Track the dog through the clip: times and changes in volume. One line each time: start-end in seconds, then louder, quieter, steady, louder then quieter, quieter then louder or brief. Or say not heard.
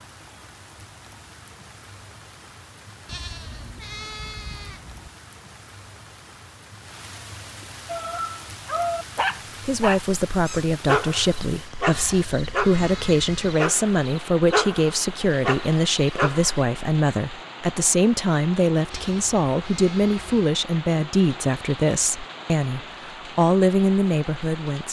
7.8-16.6 steady.